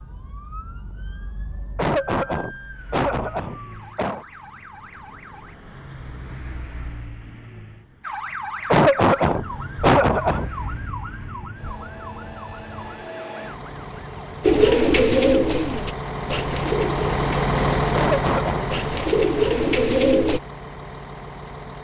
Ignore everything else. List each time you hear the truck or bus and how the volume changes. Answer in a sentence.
You can hear the truck or bus from 2.7 to 21.7 s, getting louder.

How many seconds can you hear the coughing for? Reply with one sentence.
You can hear the coughing for 5 seconds altogether.